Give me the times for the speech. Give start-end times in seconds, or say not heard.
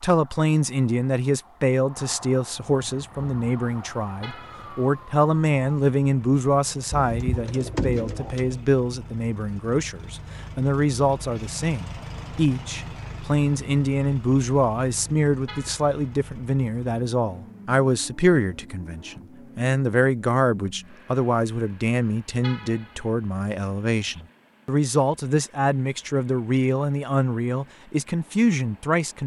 0.0-29.2.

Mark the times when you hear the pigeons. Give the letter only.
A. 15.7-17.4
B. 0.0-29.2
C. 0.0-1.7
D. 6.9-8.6
D.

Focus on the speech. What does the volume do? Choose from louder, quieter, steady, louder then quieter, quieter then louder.
steady.